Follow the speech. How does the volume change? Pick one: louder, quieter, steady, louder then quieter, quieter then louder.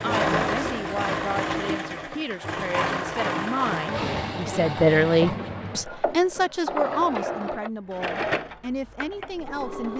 louder then quieter.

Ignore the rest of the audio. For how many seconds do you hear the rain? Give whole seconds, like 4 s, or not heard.
not heard.